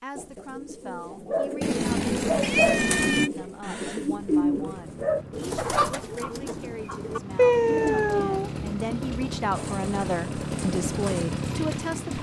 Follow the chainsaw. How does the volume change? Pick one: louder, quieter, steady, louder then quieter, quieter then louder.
louder.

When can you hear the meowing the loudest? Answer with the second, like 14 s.
8 s.